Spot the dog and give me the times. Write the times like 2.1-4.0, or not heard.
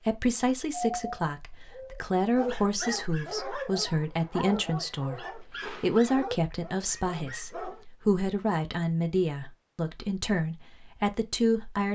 0.7-7.8.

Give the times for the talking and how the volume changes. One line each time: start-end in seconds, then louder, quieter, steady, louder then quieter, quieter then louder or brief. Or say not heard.
0.1-11.9 steady.